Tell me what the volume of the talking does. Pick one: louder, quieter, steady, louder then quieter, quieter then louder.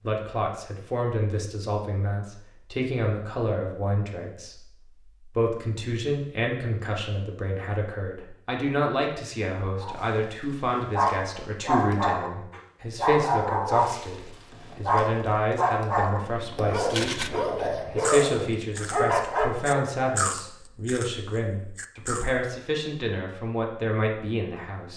steady.